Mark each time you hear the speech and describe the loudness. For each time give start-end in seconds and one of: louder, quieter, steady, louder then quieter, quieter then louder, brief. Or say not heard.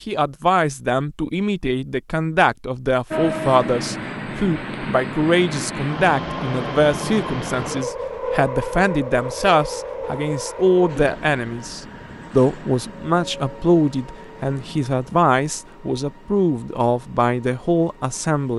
0.1-18.5 steady.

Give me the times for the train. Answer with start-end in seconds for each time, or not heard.
3.1-18.5.